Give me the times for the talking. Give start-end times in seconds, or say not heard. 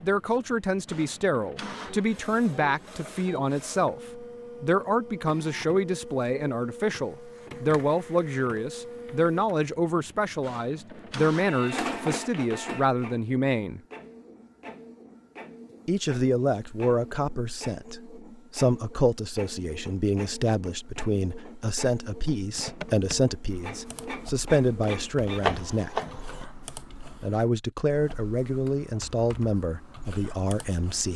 0.0-13.8, 15.8-26.0, 27.1-31.1.